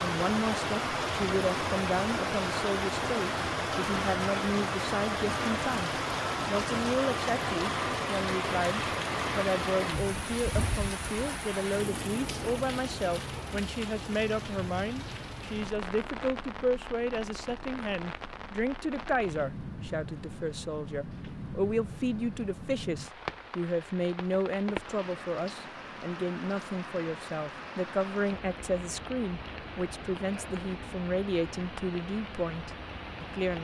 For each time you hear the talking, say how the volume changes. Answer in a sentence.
You can hear the talking from 0.0 to 33.5 s, at a steady volume.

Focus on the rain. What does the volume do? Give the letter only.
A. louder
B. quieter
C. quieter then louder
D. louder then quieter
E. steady
B.